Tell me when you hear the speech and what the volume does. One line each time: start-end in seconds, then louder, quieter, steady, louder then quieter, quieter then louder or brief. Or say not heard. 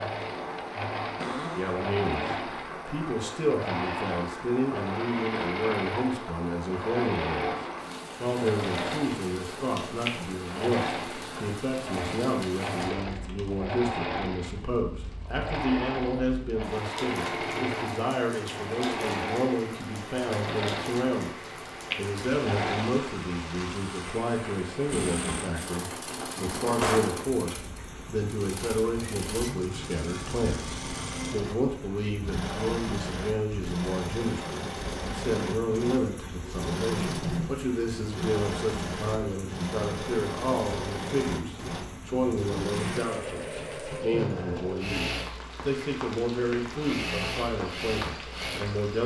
1.6-7.5 steady
8.2-49.0 steady.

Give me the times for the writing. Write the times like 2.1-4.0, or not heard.
not heard.